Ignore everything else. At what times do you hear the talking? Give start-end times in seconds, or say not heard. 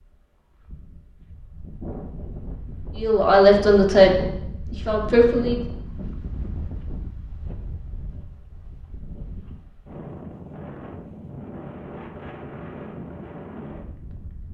3.0-5.6.